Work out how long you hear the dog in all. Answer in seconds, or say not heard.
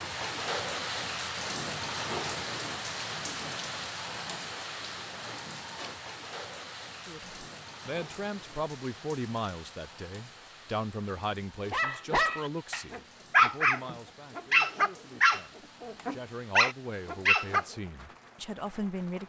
6 s.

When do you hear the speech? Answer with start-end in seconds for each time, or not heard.
7.0-19.2.